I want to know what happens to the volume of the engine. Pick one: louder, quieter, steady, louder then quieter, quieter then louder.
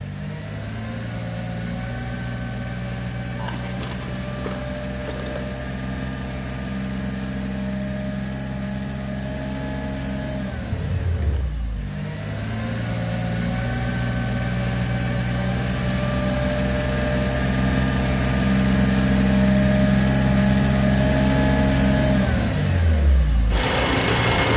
louder.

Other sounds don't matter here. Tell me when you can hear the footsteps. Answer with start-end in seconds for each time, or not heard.
not heard.